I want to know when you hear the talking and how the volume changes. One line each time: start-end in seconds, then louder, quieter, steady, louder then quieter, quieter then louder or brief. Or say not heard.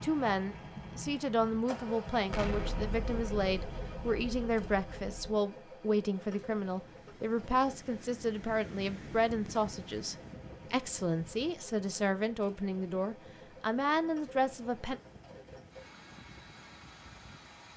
0.0-15.0 steady.